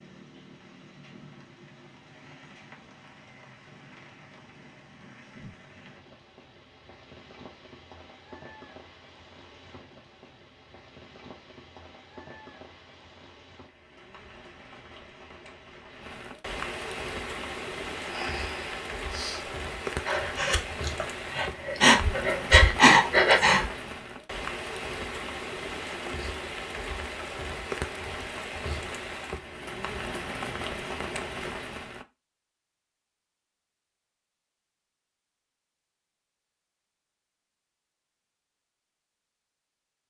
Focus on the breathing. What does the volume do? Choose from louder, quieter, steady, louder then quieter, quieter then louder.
louder.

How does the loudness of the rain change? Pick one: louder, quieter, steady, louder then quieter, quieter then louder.
louder.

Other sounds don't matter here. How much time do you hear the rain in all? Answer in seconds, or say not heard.
32 s.